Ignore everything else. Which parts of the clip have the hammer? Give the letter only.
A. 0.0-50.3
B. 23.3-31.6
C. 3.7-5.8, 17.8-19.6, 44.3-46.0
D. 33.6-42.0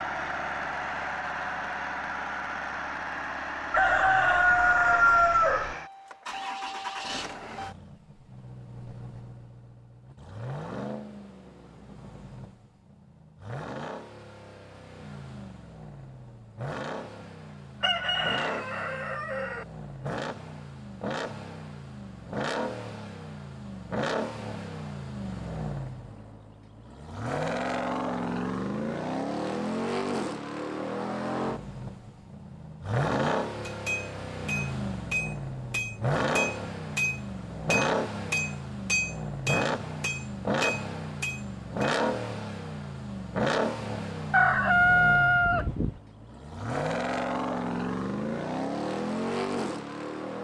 D.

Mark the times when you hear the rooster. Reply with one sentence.
The rooster can be heard from 3.7 to 5.8 s, from 17.8 to 19.6 s and from 44.3 to 46.0 s.